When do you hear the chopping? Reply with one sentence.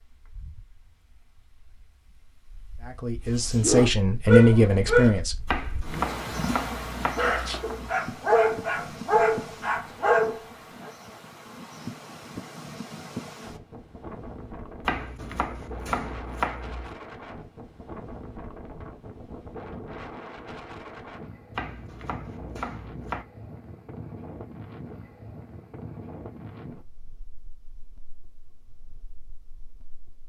You can hear the chopping from 5.5 to 7.9 s, from 14.8 to 16.9 s and from 21.5 to 23.2 s.